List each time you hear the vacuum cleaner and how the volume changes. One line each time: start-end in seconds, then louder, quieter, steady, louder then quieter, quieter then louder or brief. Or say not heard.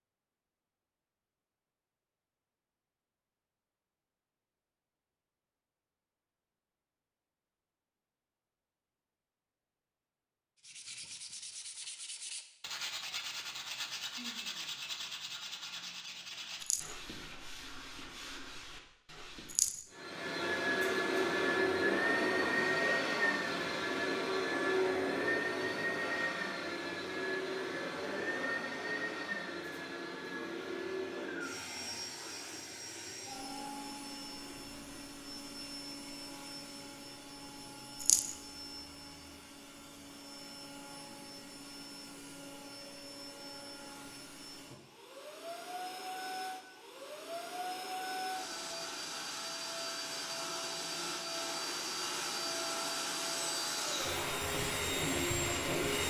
19.9-56.0 quieter then louder.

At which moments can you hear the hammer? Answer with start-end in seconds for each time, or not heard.
not heard.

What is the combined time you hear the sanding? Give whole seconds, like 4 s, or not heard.
9 s.